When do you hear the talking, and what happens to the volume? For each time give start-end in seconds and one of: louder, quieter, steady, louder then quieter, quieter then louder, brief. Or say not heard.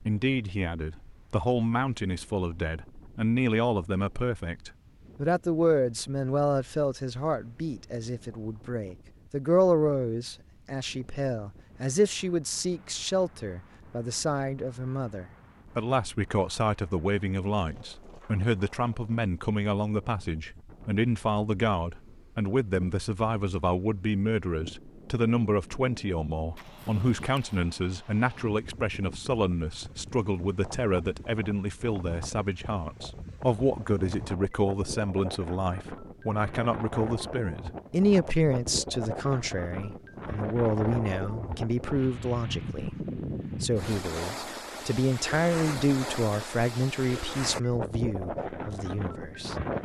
0.0-49.5 steady.